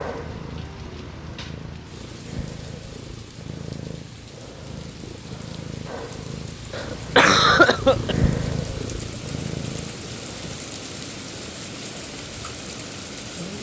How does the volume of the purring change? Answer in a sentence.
The volume of the purring goes up.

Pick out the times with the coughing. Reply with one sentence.
You can hear the coughing from 6.7 to 8.2 s.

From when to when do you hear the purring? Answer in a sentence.
You can hear the purring from 0.0 to 10.6 s.